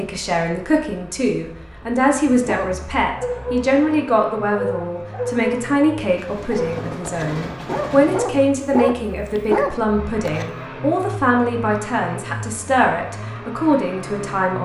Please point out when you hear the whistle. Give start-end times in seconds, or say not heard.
not heard.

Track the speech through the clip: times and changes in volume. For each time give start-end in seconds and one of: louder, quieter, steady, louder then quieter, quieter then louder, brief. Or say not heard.
0.0-14.6 steady.